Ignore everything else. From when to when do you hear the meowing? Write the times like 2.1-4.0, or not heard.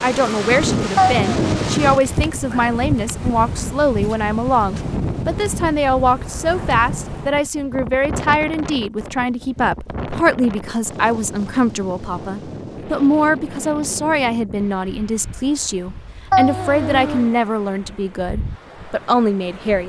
0.9-1.5, 16.3-17.3.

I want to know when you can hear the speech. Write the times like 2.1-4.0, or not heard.
0.0-19.8.